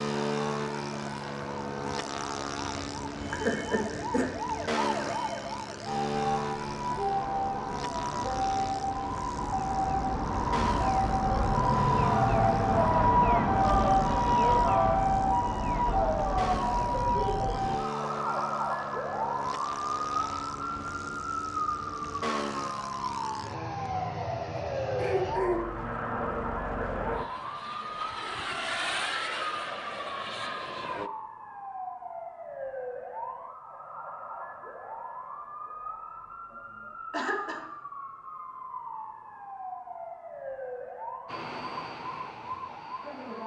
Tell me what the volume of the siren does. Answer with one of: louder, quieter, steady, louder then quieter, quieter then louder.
louder then quieter.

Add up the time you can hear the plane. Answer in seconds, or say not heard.
33 s.